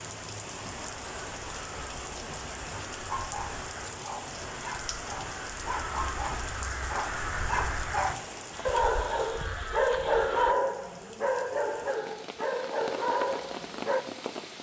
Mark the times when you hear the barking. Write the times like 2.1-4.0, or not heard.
3.1-14.0.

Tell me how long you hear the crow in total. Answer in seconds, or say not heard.
10 s.